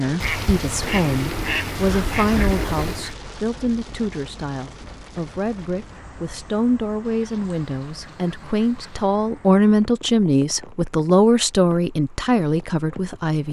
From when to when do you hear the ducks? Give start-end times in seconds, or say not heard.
0.2-3.1, 7.0-9.1.